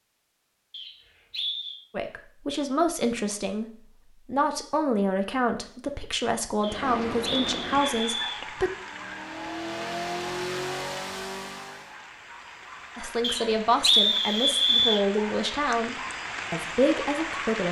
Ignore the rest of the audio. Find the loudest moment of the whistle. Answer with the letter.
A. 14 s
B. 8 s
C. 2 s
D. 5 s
A.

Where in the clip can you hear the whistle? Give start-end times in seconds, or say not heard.
0.7-1.8, 6.6-8.4, 13.2-15.1.